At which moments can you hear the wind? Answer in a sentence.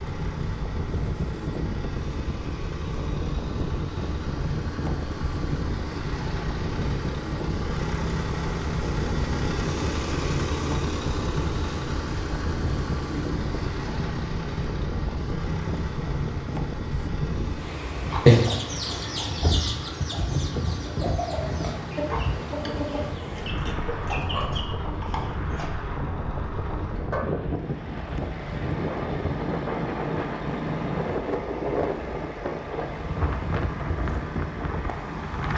You can hear the wind from 0.0 to 35.5 s.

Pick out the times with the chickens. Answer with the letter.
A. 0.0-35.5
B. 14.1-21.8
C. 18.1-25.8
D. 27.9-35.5
C.